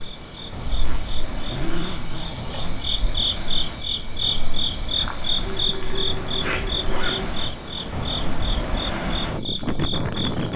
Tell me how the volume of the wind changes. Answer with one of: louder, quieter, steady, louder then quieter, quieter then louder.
louder.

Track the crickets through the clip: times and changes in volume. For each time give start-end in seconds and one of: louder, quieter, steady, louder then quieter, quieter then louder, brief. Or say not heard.
0.0-10.5 louder then quieter.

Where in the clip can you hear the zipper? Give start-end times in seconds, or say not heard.
0.8-2.6, 5.4-7.3.